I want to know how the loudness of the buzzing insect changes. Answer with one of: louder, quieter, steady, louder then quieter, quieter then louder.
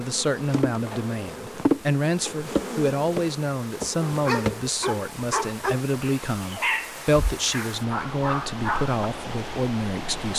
louder then quieter.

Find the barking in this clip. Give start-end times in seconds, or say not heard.
4.0-9.1.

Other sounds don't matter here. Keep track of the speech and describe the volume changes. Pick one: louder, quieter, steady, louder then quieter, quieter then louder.
steady.